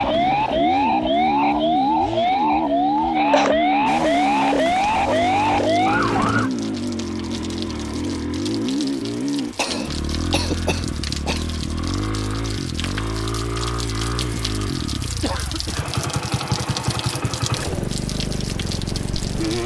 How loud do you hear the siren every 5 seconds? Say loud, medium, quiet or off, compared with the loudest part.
loud, loud, off, off.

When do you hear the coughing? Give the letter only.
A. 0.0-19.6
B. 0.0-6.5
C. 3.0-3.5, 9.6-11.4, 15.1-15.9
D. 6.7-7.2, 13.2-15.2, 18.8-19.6
C.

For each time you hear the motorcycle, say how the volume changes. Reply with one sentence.
You can hear the motorcycle from 0.0 to 19.6 s, at a steady volume.